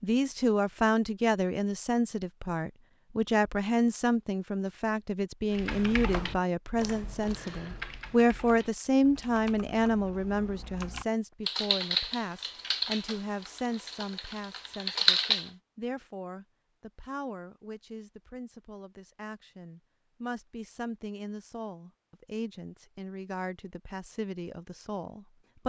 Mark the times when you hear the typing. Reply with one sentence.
You can hear the typing from 5.5 to 15.5 s.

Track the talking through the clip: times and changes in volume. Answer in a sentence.
The talking can be heard from 0.0 to 25.6 s, getting quieter.